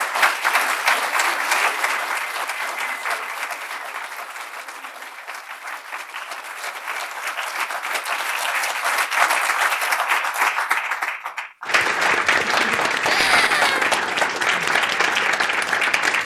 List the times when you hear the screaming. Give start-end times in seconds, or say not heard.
13.1-13.9.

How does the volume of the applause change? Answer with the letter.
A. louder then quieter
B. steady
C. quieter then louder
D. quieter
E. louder
C.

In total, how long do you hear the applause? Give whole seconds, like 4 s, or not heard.
16 s.